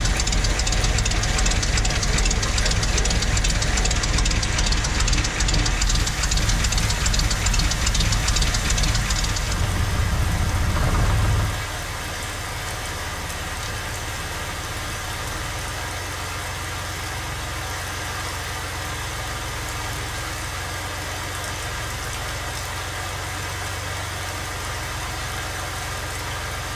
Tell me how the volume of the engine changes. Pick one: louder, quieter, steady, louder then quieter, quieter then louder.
quieter.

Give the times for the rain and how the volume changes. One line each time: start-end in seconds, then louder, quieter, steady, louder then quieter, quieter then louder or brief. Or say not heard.
0.0-26.7 steady.